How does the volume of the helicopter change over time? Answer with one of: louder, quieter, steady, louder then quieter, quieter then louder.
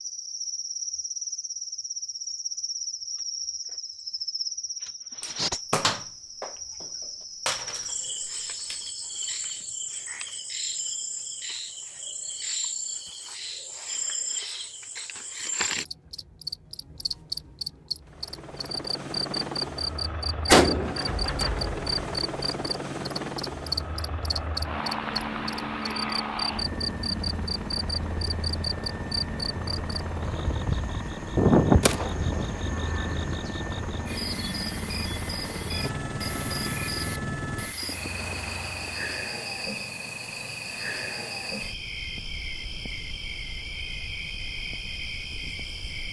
steady.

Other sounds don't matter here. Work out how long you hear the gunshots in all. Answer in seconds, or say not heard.
6 s.